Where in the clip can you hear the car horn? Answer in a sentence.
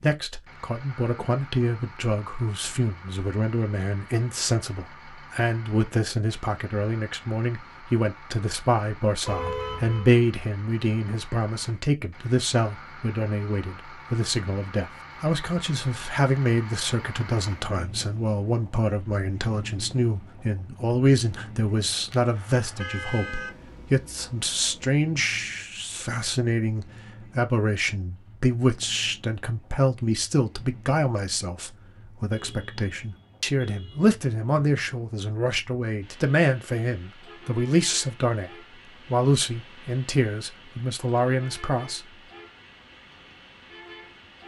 The car horn can be heard from 9.2 to 10.1 s, from 22.1 to 23.5 s and from 32.3 to 34.0 s.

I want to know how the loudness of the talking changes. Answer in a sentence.
The volume of the talking stays about the same.